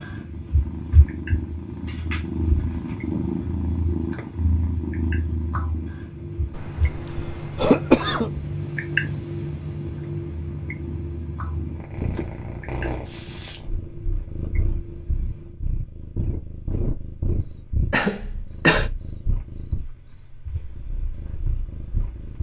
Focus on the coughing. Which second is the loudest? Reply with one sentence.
The volume of the coughing peaks at 8 seconds.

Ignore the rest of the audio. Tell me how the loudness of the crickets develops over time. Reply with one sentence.
The volume of the crickets goes up, then down.